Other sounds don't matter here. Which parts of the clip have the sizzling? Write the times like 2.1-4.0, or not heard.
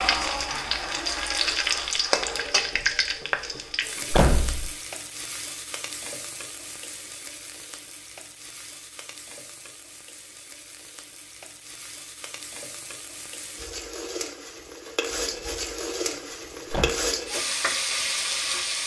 0.0-18.8.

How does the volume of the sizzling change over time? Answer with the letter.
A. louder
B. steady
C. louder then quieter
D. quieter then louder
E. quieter
D.